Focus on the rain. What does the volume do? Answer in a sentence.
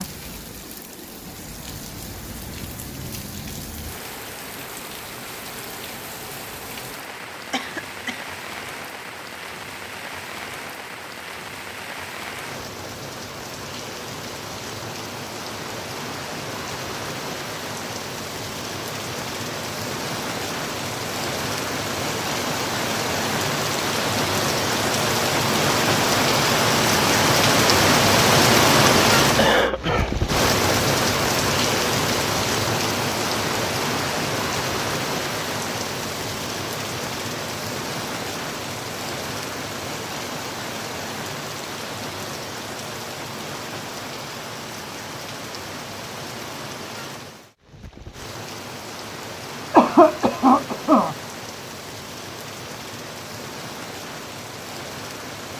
The volume of the rain goes up, then down.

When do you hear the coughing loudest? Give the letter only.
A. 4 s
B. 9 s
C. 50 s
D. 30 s
C.